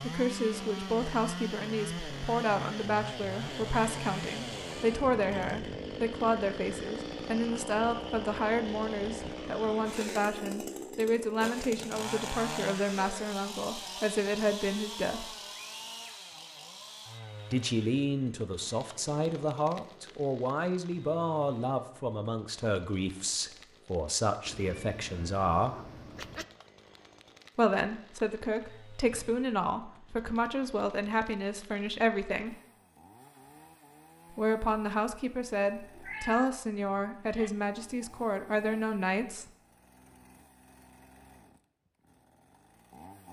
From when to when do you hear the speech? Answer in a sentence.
The speech can be heard from 0.0 to 15.3 s, from 17.5 to 25.8 s, from 27.6 to 32.5 s and from 34.3 to 39.5 s.